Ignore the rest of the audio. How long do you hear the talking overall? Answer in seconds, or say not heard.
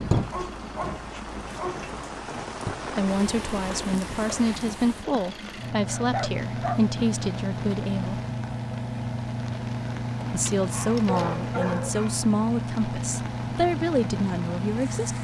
10 s.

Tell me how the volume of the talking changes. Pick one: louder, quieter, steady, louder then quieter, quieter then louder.
steady.